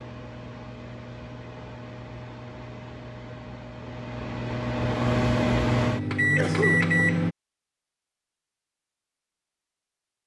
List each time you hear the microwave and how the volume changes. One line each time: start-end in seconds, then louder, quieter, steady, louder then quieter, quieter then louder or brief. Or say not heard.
0.0-7.3 louder.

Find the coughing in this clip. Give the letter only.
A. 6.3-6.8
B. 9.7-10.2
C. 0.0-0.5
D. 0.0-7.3
A.